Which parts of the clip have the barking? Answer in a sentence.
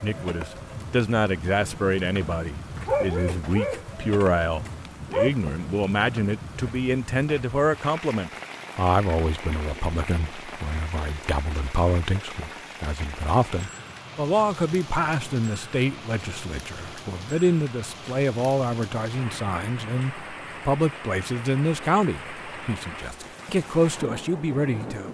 The barking can be heard from 2.8 to 5.3 s.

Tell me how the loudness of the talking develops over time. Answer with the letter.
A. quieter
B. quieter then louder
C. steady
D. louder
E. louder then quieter
C.